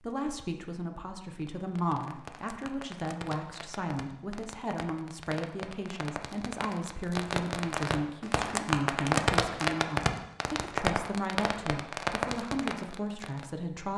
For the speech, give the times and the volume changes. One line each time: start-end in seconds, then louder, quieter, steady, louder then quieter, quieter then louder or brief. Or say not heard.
0.0-13.9 steady.